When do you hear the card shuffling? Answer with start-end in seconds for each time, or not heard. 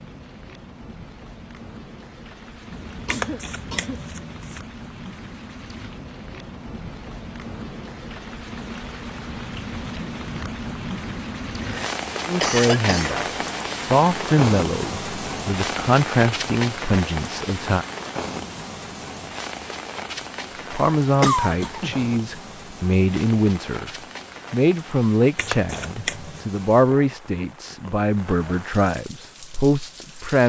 3.0-4.6, 25.4-26.4.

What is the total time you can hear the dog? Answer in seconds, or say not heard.
not heard.